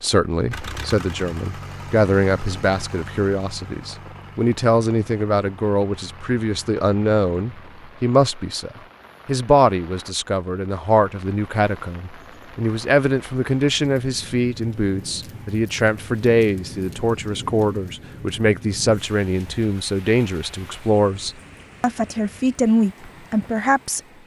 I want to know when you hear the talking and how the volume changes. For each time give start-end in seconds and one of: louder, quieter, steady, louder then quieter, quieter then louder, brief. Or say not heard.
0.0-24.0 steady.